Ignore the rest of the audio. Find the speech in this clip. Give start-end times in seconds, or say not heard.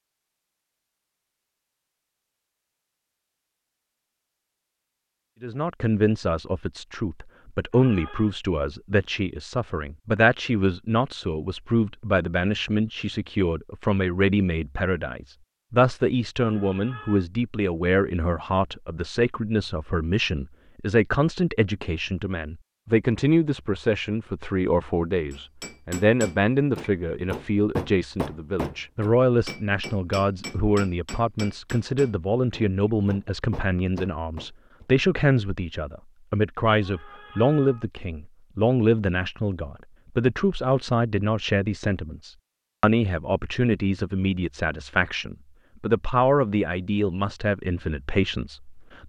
5.4-49.0.